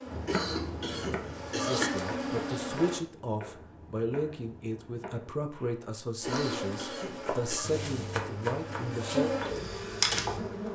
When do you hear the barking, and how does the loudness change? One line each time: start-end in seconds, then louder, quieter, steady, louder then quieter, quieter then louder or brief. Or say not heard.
not heard.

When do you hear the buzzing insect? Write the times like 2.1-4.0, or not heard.
0.0-3.0, 6.2-10.7.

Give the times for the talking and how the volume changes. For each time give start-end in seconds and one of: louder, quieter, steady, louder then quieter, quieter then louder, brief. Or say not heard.
1.4-9.3 steady.